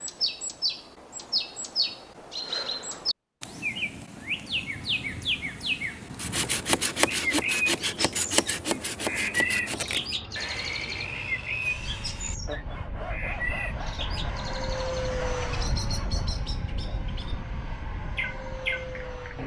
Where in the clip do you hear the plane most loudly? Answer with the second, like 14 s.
15 s.